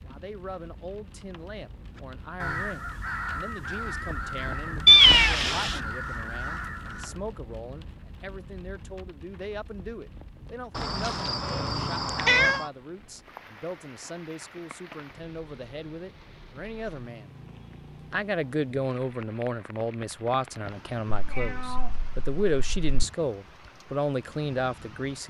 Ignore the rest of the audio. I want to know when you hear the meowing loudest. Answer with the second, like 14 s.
5 s.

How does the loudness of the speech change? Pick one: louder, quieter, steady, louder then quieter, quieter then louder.
louder.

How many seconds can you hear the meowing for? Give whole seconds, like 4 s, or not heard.
5 s.